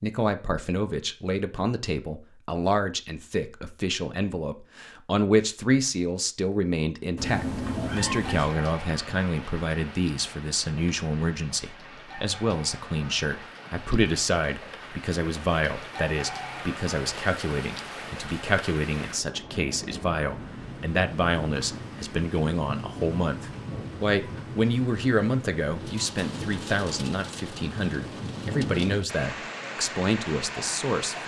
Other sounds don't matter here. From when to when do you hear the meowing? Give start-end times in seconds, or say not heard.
7.2-8.5.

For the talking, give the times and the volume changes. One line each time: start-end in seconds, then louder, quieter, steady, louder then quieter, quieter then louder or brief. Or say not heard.
0.0-31.2 steady.